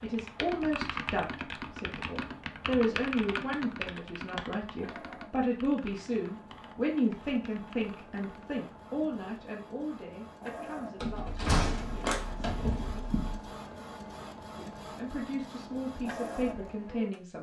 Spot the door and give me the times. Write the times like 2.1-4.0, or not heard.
11.0-13.4.